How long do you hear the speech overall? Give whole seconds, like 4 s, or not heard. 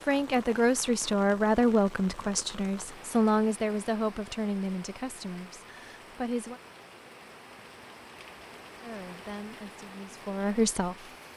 9 s.